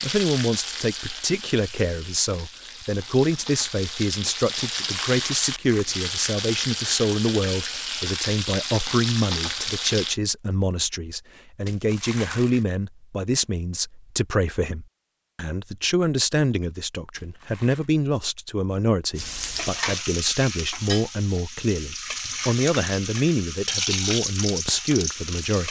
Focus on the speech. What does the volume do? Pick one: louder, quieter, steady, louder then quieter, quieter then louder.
steady.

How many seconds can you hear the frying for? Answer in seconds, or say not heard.
17 s.